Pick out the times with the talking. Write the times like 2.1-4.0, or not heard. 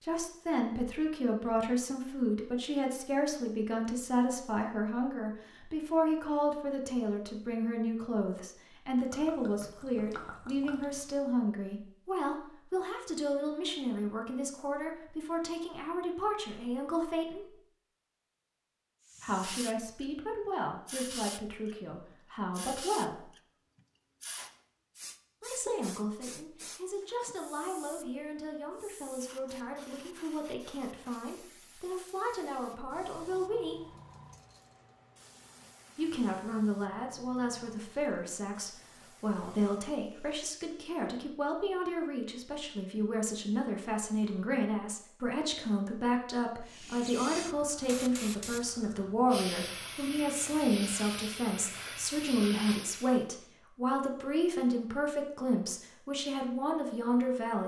0.0-17.6, 19.2-23.3, 25.4-33.9, 36.0-57.6.